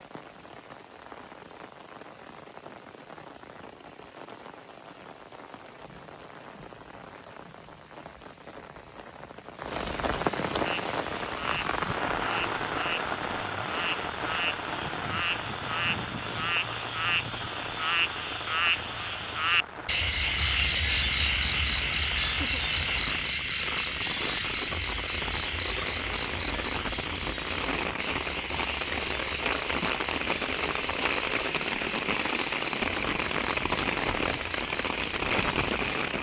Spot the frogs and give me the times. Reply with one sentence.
The frogs can be heard from 10.7 to 35.9 s.